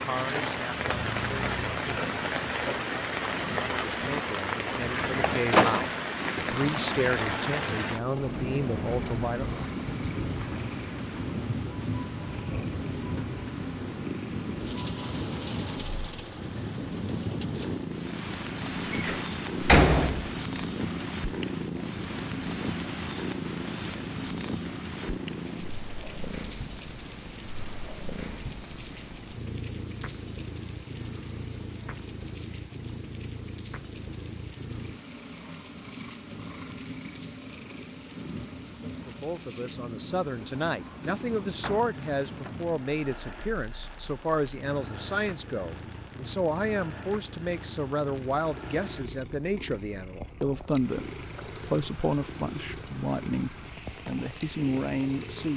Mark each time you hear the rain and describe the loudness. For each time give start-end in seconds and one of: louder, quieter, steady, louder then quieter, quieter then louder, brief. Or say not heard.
0.0-55.5 quieter.